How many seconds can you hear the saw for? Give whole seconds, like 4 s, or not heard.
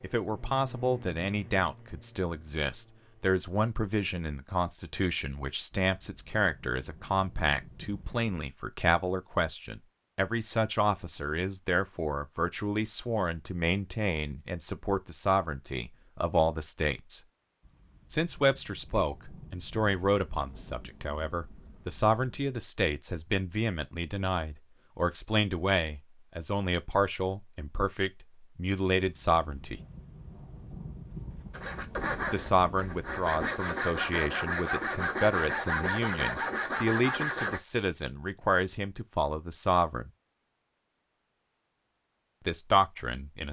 6 s.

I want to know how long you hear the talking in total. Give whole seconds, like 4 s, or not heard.
38 s.